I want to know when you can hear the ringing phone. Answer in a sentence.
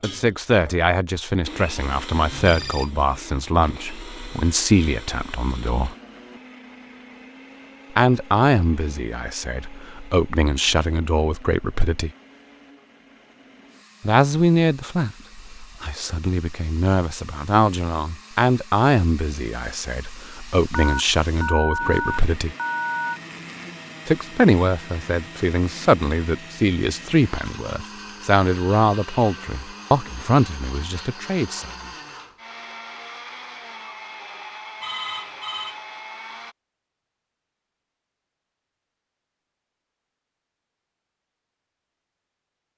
The ringing phone can be heard from 2.3 to 3.0 s, from 20.7 to 23.2 s and from 34.8 to 35.8 s.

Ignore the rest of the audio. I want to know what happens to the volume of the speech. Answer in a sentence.
The volume of the speech stays about the same.